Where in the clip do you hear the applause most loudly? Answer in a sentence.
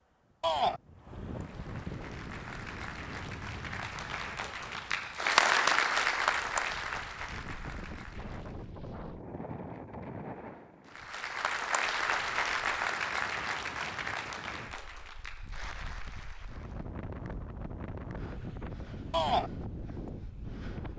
The loudest moment of the applause is at 6 seconds.